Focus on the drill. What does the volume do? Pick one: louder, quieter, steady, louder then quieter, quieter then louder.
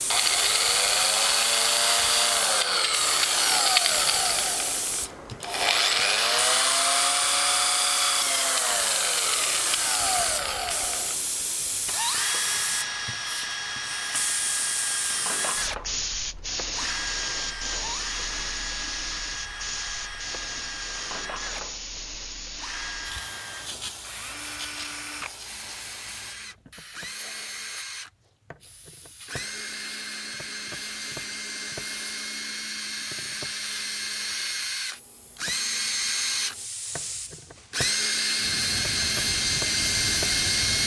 quieter then louder.